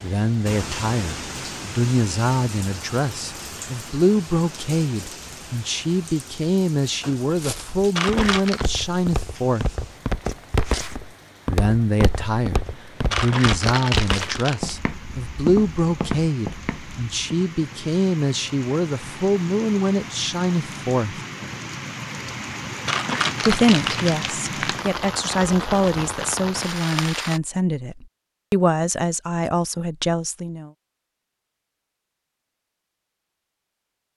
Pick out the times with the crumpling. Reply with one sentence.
The crumpling can be heard from 8.0 to 8.7 s, from 13.1 to 14.8 s and from 22.9 to 24.9 s.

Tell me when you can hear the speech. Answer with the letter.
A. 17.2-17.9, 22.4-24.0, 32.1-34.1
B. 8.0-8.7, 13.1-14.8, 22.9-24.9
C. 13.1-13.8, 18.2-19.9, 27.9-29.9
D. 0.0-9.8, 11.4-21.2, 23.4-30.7
D.